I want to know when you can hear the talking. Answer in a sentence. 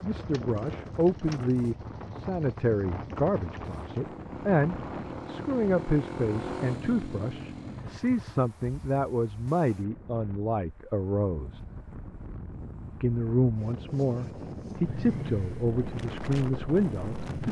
You can hear the talking from 0.0 to 11.6 s and from 13.0 to 17.4 s.